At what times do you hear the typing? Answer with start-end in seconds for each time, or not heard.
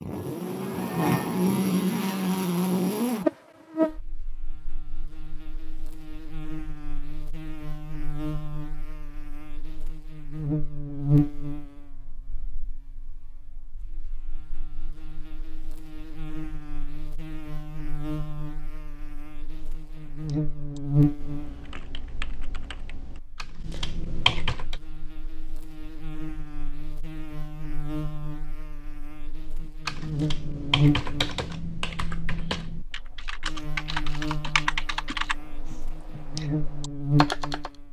20.1-24.8, 29.9-37.7.